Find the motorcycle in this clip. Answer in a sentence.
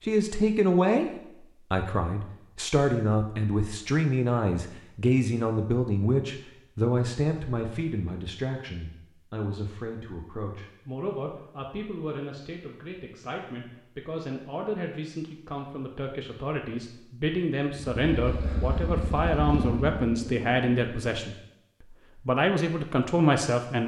The motorcycle can be heard from 17.8 to 21.3 s.